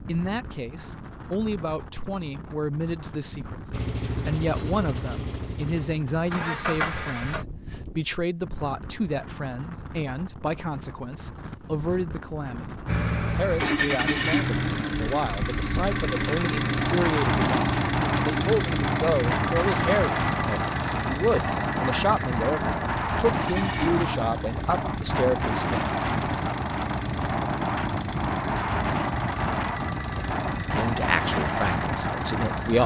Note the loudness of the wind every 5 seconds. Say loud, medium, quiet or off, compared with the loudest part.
quiet, quiet, medium, loud, loud, loud, loud.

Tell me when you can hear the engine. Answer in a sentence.
The engine can be heard from 3.7 to 7.5 s and from 12.8 to 32.8 s.